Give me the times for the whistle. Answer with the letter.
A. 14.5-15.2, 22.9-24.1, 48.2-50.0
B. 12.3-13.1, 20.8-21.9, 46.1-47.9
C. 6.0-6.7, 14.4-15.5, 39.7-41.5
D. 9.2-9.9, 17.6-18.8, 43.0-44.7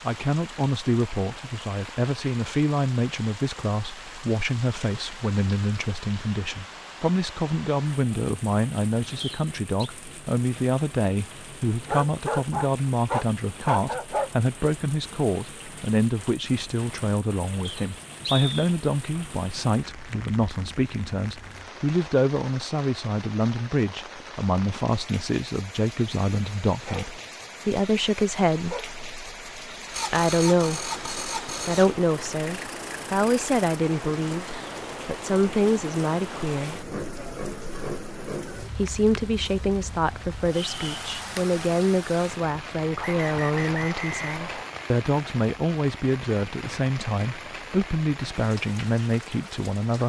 D.